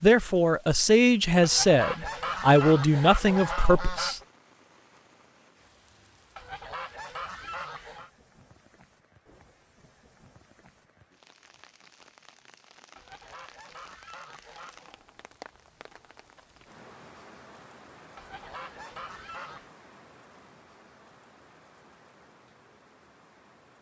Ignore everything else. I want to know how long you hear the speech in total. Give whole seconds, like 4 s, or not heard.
4 s.